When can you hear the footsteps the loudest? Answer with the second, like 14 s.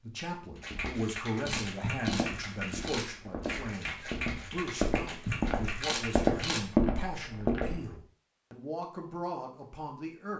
7 s.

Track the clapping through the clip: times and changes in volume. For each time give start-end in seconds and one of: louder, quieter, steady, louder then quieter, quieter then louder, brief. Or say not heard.
0.6-6.6 steady.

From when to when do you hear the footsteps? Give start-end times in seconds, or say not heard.
0.6-7.8.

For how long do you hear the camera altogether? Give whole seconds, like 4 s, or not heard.
3 s.